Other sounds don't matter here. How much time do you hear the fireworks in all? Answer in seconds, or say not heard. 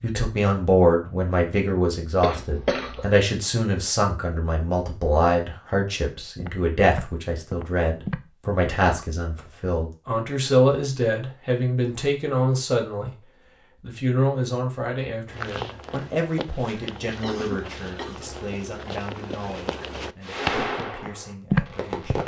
2 s.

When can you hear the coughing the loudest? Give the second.
3 s.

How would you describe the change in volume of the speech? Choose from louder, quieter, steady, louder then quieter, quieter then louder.
quieter.